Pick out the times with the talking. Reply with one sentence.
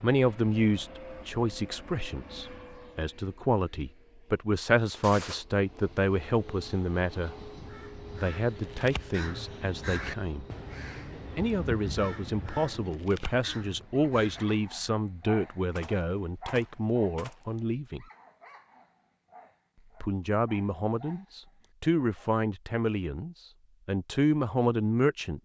You can hear the talking from 0.0 to 7.3 s, from 8.2 to 10.4 s, from 11.3 to 18.1 s and from 20.0 to 25.4 s.